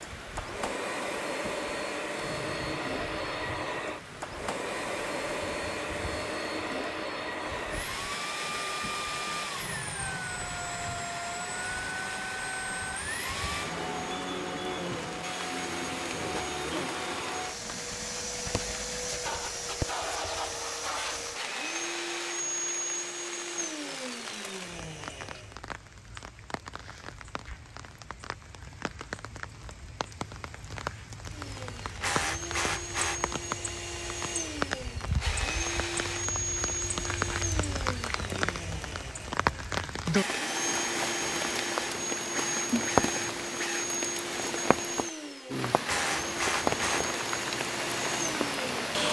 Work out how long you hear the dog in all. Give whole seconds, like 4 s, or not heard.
not heard.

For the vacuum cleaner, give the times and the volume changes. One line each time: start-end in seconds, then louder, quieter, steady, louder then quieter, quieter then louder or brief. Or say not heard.
0.0-25.6 steady
31.3-49.0 steady.